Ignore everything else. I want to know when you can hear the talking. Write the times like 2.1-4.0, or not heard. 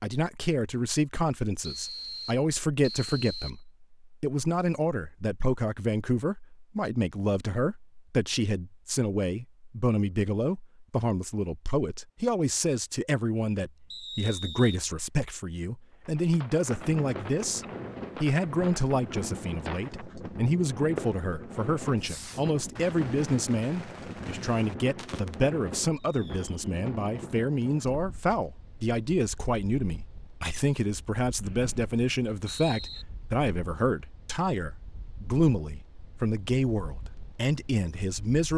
0.0-38.5.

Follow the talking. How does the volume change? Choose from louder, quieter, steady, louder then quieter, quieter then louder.
steady.